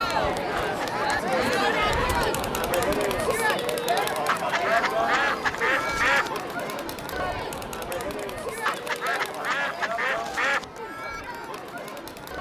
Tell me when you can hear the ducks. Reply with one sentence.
You can hear the ducks from 0.6 to 2.2 s, from 4.2 to 6.3 s and from 8.7 to 10.7 s.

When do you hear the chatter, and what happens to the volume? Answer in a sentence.
The chatter can be heard from 0.0 to 12.3 s, getting quieter.